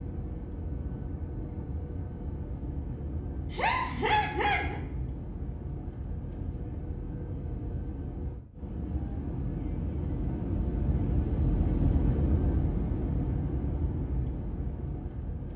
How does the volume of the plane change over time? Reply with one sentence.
The loudness of the plane goes up.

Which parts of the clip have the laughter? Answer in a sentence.
The laughter can be heard from 3.5 to 4.8 s.